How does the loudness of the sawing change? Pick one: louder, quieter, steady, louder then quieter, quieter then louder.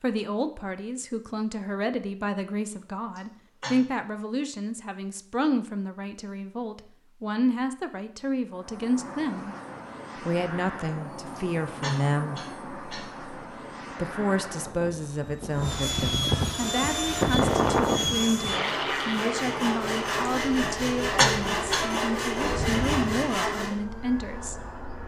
louder.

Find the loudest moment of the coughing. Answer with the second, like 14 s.
21 s.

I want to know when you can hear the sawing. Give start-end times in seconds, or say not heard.
16.6-23.8.